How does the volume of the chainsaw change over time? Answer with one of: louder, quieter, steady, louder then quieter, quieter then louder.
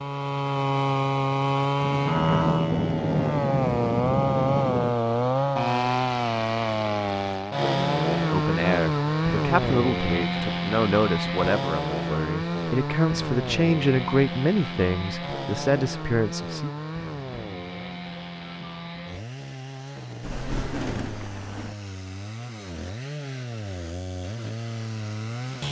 quieter.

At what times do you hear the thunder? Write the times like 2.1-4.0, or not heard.
1.8-5.0, 20.2-21.8.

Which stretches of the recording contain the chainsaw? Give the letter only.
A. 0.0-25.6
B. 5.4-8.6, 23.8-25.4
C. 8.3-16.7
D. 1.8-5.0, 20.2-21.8
A.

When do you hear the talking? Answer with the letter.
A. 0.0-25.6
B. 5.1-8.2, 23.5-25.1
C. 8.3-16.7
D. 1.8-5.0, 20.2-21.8
C.